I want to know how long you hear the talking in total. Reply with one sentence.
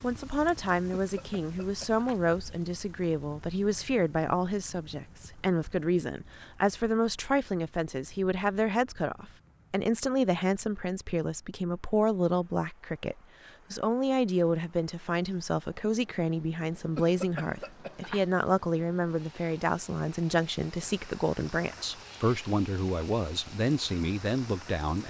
The talking can be heard for 25 seconds in total.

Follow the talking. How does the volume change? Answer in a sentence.
The loudness of the talking stays about the same.